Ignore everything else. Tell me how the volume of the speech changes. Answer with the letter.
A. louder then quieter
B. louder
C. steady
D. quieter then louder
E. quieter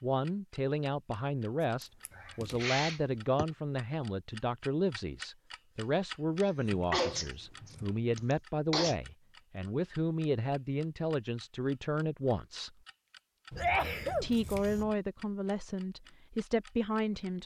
C.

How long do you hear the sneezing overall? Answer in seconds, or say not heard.
5 s.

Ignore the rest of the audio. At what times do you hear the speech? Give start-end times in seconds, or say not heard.
0.0-12.7, 14.2-17.4.